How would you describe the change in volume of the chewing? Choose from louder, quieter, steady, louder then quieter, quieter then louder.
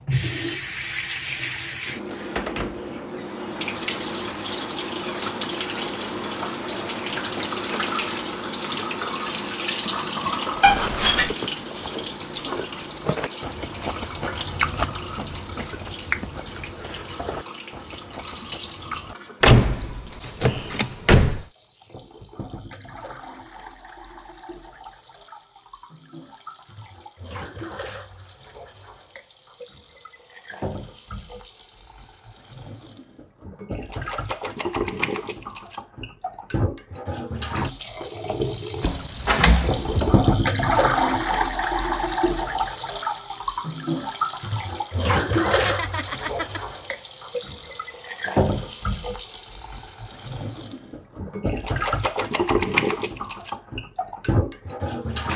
louder then quieter.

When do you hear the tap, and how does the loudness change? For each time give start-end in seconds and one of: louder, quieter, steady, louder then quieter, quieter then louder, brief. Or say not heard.
0.1-55.3 quieter then louder.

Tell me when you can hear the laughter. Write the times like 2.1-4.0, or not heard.
45.4-46.6.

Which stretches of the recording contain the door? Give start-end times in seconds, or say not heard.
10.6-11.3, 19.4-21.4, 38.8-40.2.